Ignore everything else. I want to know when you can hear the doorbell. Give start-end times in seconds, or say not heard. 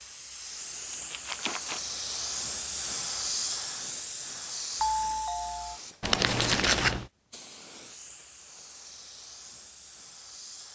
4.8-5.8.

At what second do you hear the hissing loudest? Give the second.
3 s.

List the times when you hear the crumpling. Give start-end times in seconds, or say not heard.
0.8-1.8, 6.0-7.0.